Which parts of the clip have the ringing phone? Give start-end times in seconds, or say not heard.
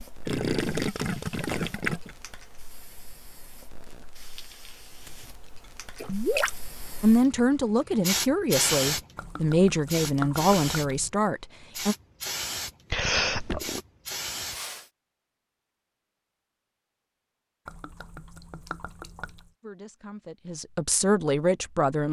not heard.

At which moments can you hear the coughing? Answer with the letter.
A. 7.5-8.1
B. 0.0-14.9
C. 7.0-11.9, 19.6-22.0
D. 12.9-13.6
D.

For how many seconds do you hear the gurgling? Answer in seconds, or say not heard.
7 s.